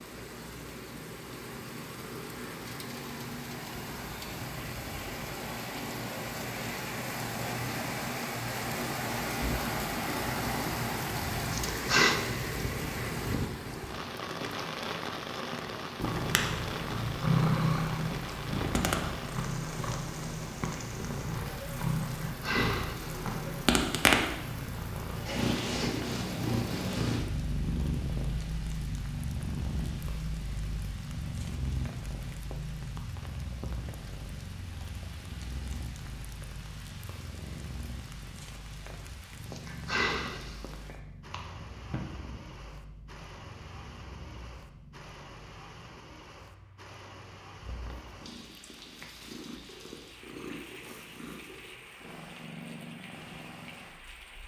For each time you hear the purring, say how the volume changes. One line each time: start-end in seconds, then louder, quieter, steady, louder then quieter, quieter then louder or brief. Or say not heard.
15.9-54.4 quieter.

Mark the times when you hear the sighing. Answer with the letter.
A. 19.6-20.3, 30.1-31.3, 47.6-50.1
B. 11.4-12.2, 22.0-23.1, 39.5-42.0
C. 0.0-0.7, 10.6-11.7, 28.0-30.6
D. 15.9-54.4
B.